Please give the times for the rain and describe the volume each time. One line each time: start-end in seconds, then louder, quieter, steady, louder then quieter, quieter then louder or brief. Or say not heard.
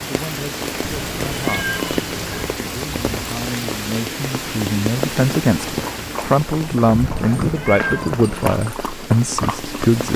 0.0-10.1 quieter.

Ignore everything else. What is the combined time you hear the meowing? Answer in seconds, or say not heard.
3 s.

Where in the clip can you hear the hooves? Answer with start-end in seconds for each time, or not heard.
5.7-10.1.